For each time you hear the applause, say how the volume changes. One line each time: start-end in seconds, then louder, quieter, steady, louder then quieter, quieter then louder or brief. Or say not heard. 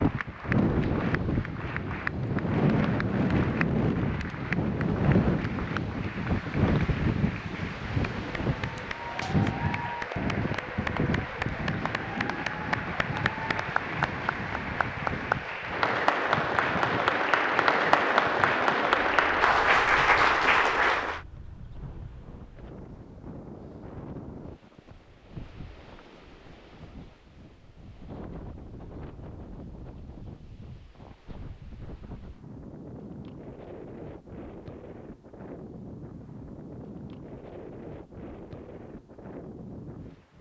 0.0-21.2 louder.